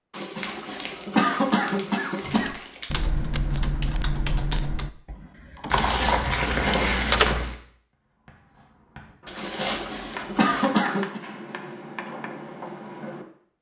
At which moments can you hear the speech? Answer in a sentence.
You can't hear the speech here.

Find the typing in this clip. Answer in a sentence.
The typing can be heard from 2.2 to 7.5 s.